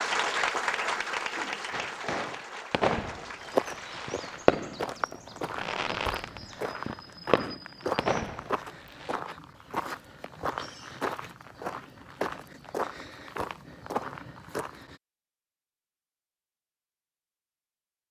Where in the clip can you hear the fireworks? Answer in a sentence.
The fireworks can be heard from 1.7 to 9.2 s.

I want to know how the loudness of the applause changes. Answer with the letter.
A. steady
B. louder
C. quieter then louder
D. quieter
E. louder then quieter
D.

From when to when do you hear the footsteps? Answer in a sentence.
You can hear the footsteps from 3.4 to 14.9 s.